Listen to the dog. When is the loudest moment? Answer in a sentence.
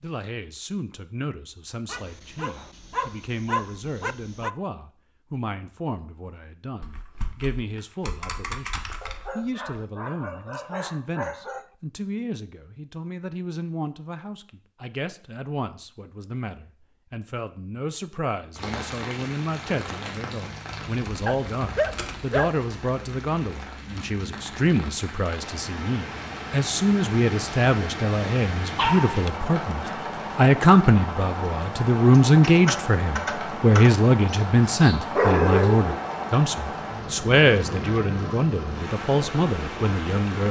The volume of the dog peaks at 35 seconds.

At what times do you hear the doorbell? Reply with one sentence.
You can't hear the doorbell here.